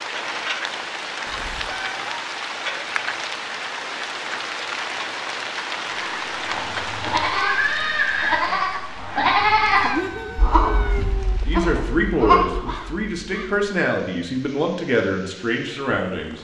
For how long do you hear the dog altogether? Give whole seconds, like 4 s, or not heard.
not heard.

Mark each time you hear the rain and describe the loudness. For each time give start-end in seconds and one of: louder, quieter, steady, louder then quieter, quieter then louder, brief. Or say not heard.
0.0-16.3 quieter.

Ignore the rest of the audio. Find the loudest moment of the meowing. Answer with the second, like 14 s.
10 s.